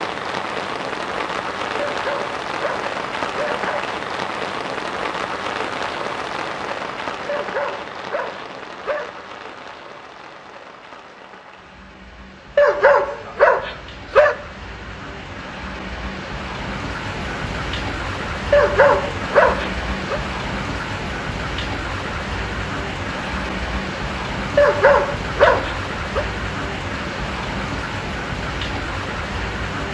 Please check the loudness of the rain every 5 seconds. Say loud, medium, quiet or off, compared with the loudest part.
loud, loud, quiet, loud, loud, loud.